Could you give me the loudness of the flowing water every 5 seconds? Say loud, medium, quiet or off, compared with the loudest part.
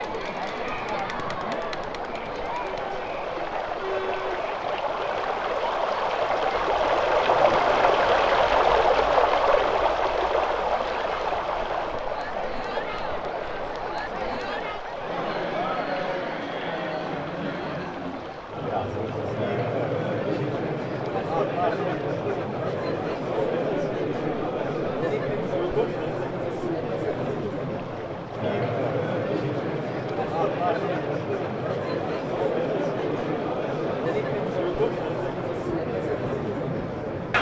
medium, loud, medium, quiet, quiet, quiet, quiet, quiet.